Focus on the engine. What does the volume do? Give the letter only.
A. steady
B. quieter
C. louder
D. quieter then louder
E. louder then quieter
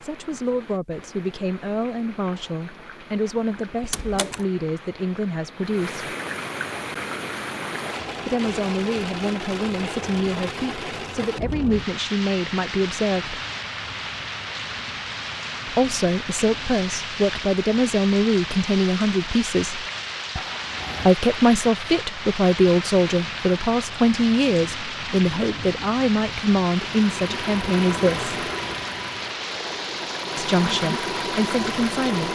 D.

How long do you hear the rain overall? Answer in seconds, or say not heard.
32 s.